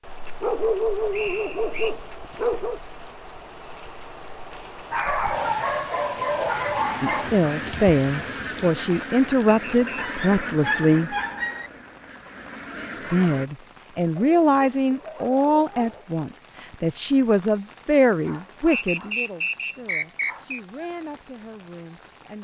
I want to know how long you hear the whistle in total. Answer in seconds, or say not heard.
3 s.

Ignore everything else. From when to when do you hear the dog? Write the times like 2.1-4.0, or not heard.
0.4-2.8, 4.9-7.3, 9.9-11.7, 14.2-16.2, 18.1-20.5.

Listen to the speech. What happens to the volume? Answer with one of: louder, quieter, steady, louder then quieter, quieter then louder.
quieter.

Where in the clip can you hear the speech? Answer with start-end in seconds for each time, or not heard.
7.0-11.2, 13.1-22.3.